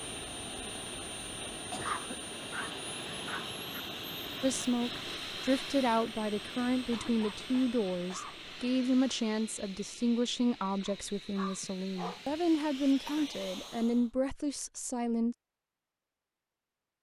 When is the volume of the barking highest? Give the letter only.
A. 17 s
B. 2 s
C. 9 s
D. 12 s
B.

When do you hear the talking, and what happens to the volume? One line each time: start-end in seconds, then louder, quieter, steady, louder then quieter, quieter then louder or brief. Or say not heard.
4.4-15.3 steady.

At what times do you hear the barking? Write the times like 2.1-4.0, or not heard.
1.8-3.8, 10.8-12.4.